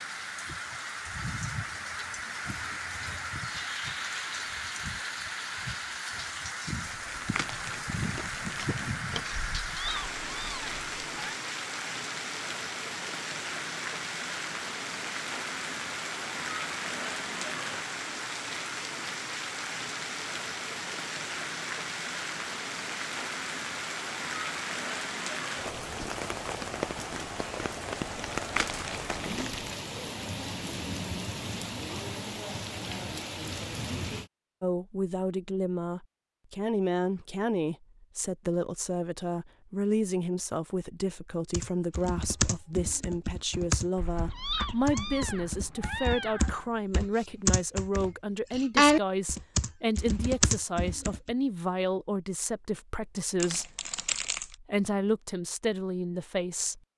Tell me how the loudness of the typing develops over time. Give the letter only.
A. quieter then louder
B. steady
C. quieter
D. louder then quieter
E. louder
D.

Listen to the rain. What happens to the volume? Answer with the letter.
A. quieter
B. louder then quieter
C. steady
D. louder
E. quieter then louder
C.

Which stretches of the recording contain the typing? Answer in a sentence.
You can hear the typing from 41.5 to 51.3 s.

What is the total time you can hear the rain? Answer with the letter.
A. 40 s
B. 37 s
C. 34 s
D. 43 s
C.